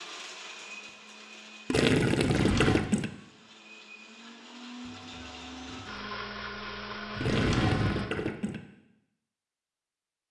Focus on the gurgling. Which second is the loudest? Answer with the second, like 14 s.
2 s.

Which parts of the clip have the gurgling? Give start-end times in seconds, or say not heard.
1.7-3.1, 7.2-8.6.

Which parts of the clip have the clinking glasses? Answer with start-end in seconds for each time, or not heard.
not heard.